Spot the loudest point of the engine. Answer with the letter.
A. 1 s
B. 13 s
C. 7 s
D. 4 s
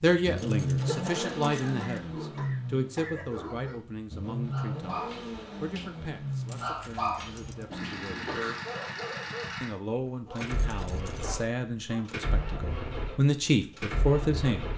A.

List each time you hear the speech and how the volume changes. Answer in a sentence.
You can hear the speech from 0.0 to 8.3 s, getting quieter; and from 9.6 to 14.7 s, getting louder.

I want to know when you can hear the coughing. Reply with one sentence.
You can hear the coughing from 0.8 to 3.2 s and from 7.7 to 8.6 s.